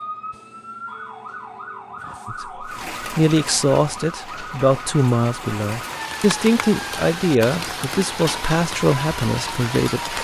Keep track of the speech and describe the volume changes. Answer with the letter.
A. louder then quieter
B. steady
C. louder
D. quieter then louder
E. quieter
B.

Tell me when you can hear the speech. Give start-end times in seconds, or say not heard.
2.2-10.2.